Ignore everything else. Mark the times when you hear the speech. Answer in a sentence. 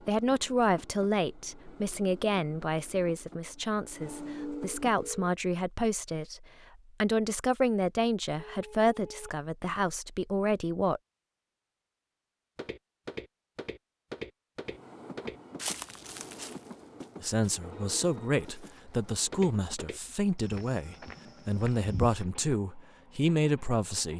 You can hear the speech from 0.1 to 11.0 s and from 17.2 to 24.1 s.